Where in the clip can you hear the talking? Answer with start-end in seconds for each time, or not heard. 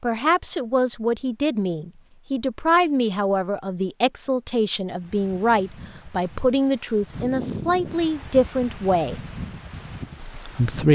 0.0-9.2, 10.3-10.9.